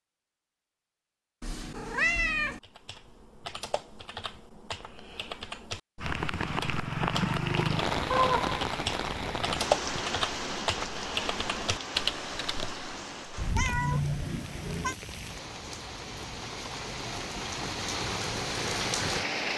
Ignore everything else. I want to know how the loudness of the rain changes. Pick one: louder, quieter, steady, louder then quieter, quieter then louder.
quieter then louder.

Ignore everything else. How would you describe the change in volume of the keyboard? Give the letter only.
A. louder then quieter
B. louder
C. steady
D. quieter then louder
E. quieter
B.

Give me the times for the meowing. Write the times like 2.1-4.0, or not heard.
1.4-2.6, 8.1-8.6, 13.3-14.9.